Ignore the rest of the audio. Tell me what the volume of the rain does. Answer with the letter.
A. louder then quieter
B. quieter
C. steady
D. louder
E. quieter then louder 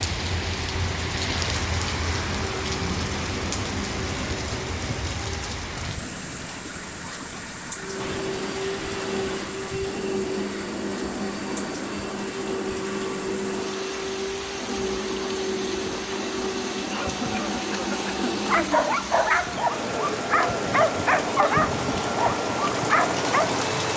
E.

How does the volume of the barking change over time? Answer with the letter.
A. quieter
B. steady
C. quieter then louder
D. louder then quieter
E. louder
B.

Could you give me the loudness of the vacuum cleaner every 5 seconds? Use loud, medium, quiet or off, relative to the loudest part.
medium, loud, loud, loud, loud.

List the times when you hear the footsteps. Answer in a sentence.
The footsteps can't be heard in this clip.